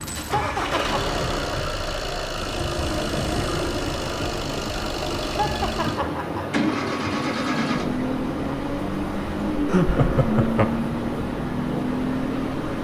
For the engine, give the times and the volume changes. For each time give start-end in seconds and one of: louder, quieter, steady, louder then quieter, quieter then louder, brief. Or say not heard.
0.0-12.7 steady.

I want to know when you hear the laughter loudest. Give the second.
10 s.